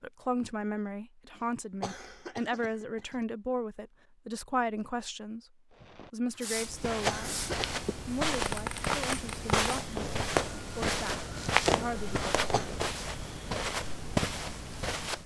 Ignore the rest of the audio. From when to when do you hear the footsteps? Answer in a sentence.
You can hear the footsteps from 6.5 to 15.2 s.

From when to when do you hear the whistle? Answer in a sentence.
You can't hear the whistle here.